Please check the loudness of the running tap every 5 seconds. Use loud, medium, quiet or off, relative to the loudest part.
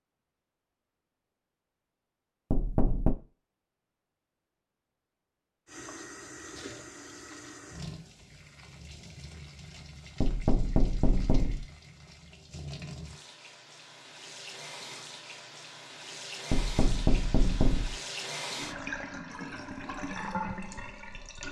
off, medium, medium, loud, loud.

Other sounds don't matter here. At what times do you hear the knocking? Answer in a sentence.
The knocking can be heard from 2.5 to 3.1 s, from 10.2 to 11.7 s and from 16.5 to 18.0 s.